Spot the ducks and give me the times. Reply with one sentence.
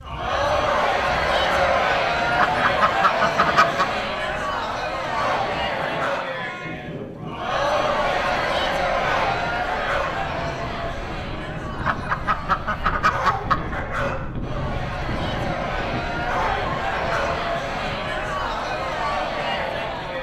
You can hear the ducks from 2.3 to 3.9 s and from 11.8 to 13.7 s.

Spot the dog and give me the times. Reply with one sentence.
You can hear the dog from 0.7 to 1.7 s, from 5.2 to 6.2 s, from 9.0 to 10.1 s, from 13.1 to 14.2 s and from 16.2 to 17.4 s.